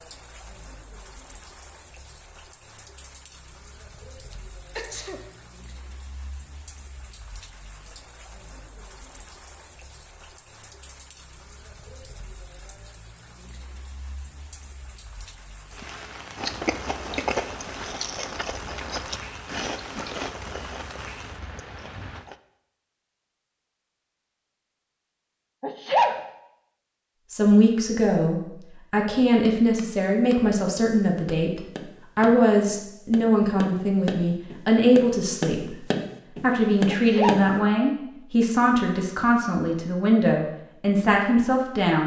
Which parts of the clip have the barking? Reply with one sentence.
The barking can't be heard in this clip.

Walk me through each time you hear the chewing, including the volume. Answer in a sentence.
The chewing can be heard from 16.4 to 22.4 s, getting quieter.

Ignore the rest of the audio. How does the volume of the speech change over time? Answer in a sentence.
The loudness of the speech stays about the same.